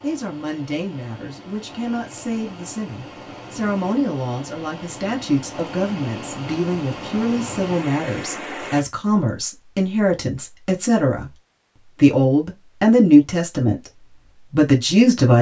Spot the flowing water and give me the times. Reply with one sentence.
The flowing water can be heard from 0.0 to 8.8 s.